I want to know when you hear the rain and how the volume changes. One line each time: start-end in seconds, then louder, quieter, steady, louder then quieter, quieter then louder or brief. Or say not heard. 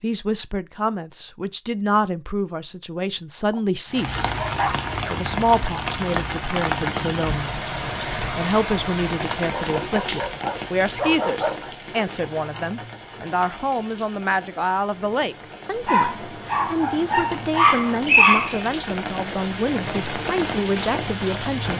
3.9-21.7 quieter then louder.